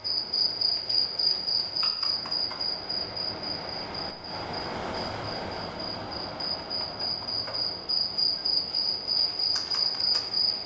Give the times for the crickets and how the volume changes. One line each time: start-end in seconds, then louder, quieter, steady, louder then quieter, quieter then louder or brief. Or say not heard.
0.0-10.6 quieter then louder.